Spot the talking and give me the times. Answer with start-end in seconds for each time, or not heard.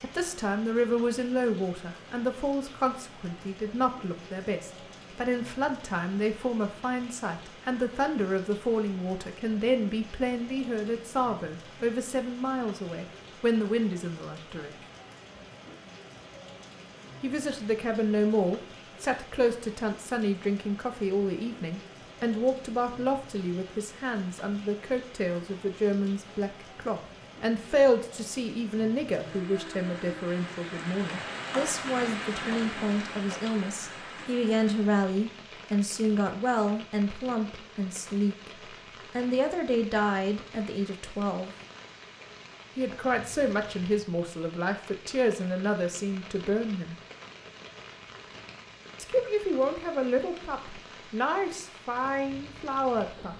0.0-14.8, 17.2-38.5, 39.1-41.5, 42.8-47.0, 49.0-53.3.